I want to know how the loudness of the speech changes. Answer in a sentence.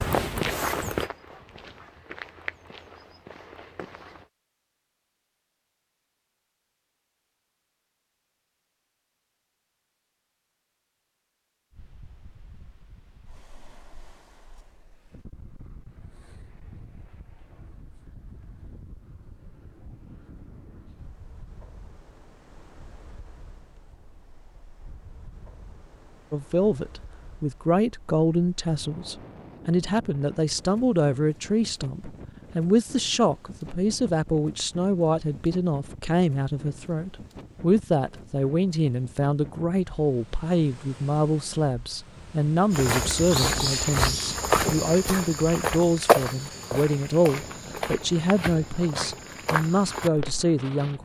The volume of the speech stays about the same.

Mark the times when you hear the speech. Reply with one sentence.
You can hear the speech from 26.3 to 51.0 s.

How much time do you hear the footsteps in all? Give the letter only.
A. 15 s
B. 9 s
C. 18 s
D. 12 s
D.